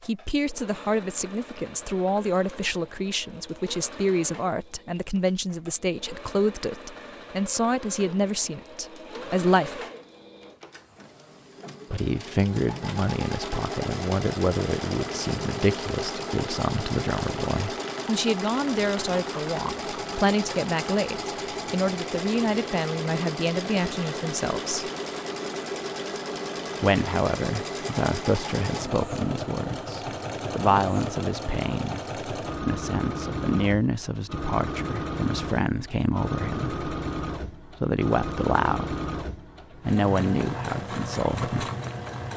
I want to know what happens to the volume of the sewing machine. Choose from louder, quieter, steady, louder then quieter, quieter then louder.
louder.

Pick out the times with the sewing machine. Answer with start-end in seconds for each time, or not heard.
0.0-42.3.